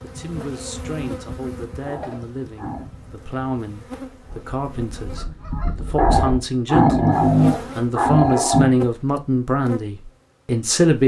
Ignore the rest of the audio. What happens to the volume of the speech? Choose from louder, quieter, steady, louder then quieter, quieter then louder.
louder.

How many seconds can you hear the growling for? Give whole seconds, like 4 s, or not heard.
4 s.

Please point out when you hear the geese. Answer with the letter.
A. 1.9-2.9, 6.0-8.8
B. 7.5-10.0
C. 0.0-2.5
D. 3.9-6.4
D.